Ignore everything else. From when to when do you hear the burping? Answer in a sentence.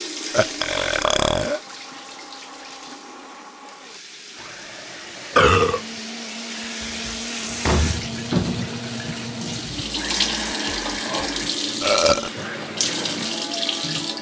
The burping can be heard from 0.3 to 1.6 s, from 5.3 to 5.8 s and from 11.8 to 12.3 s.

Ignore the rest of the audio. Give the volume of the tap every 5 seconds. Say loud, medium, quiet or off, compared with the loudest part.
medium, loud, loud.